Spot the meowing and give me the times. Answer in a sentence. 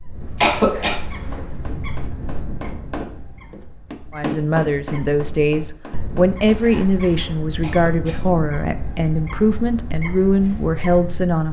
The meowing can't be heard in this clip.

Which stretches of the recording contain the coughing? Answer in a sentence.
You can hear the coughing from 0.3 to 0.9 s and from 7.6 to 8.4 s.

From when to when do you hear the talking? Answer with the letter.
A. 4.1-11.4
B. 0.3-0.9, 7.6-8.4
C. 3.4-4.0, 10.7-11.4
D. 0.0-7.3
A.